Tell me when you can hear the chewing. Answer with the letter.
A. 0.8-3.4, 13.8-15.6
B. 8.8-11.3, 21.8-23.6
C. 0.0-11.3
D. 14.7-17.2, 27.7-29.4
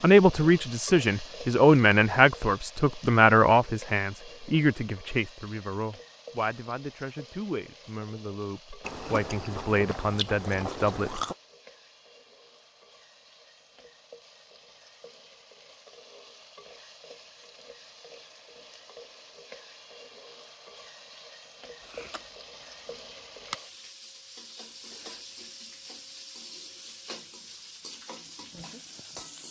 B.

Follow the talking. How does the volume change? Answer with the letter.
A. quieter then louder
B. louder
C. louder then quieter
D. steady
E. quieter
A.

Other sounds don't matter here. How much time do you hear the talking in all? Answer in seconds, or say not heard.
11 s.